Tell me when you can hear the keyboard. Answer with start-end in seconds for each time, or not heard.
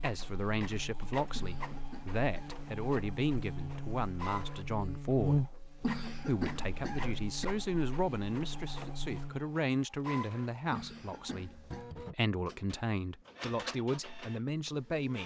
not heard.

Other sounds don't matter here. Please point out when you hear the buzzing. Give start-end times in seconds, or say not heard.
0.0-9.4.